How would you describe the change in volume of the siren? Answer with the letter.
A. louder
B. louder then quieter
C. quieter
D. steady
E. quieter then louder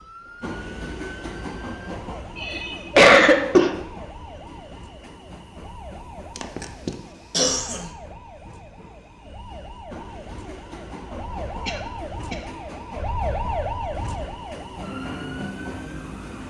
A.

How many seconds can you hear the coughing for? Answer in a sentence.
You can hear the coughing for 4 seconds altogether.